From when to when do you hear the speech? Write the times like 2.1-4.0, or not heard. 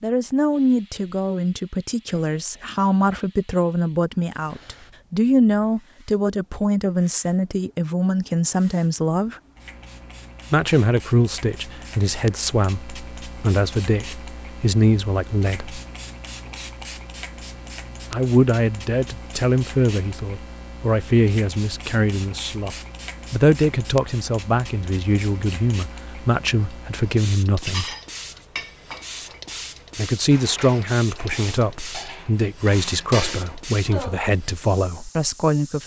0.0-9.3, 10.5-15.8, 18.1-27.9, 29.9-35.8.